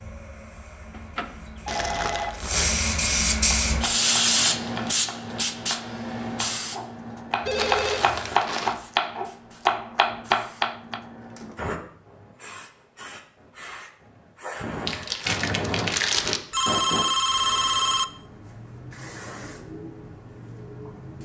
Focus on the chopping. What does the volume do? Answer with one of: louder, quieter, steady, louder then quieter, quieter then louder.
louder.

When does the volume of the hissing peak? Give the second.
4 s.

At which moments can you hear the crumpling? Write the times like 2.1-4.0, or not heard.
1.6-2.7, 7.5-8.8, 14.8-16.4.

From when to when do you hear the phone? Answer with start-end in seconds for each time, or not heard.
0.9-2.3, 7.4-8.2, 16.5-18.1.